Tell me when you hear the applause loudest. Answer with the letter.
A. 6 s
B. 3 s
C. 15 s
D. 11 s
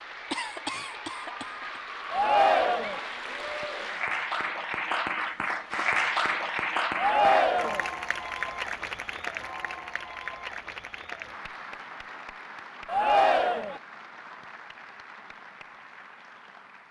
A.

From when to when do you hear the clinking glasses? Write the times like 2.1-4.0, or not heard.
not heard.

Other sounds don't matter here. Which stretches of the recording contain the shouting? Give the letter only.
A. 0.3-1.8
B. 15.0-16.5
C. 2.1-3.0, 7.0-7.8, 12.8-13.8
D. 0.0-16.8
C.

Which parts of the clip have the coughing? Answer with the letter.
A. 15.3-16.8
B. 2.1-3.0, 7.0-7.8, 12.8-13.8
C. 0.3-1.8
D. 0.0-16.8
C.